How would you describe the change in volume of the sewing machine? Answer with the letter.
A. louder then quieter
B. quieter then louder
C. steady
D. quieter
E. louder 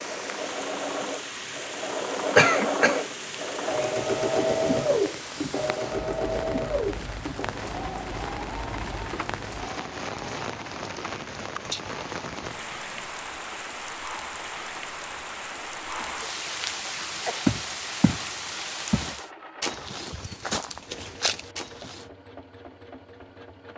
D.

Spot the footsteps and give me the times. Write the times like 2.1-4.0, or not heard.
17.0-18.2, 18.9-22.1.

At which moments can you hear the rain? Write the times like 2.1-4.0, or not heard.
0.0-19.3.